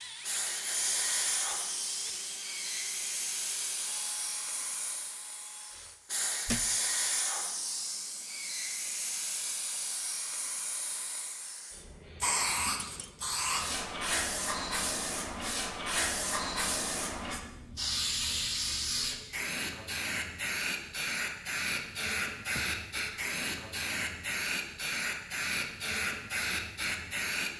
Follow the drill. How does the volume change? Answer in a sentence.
The loudness of the drill goes down.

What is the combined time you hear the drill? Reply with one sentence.
You can hear the drill for 6 seconds altogether.